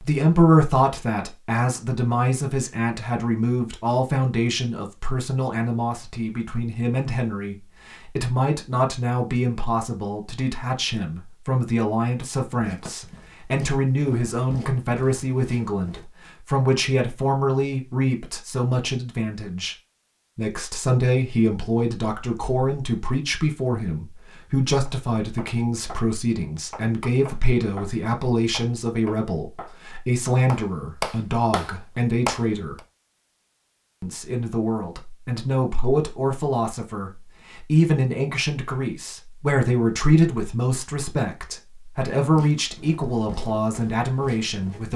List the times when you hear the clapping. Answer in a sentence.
The clapping can be heard from 24.9 to 26.1 s, from 26.7 to 29.8 s and from 30.4 to 32.8 s.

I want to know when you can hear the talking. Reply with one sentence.
The talking can be heard from 0.0 to 19.8 s, from 20.4 to 32.8 s and from 34.0 to 44.9 s.